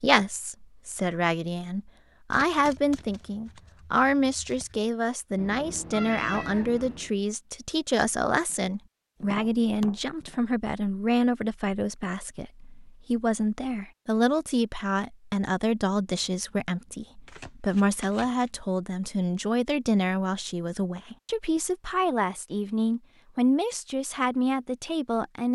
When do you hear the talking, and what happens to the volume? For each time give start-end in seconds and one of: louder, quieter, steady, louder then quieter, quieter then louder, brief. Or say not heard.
0.0-25.5 steady.